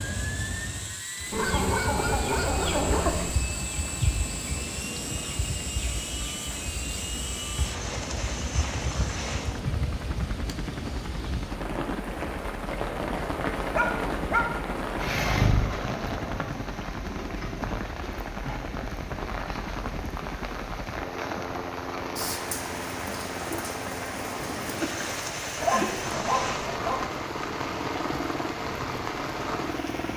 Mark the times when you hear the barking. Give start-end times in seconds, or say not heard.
1.3-3.4, 13.7-14.5, 25.6-27.1.